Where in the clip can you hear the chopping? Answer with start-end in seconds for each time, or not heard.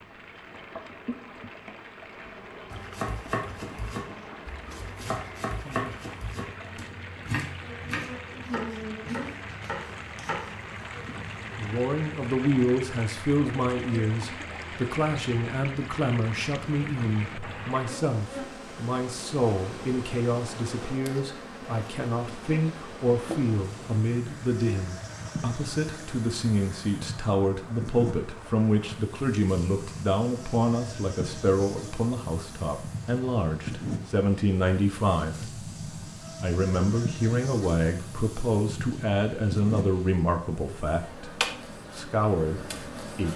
2.7-10.5.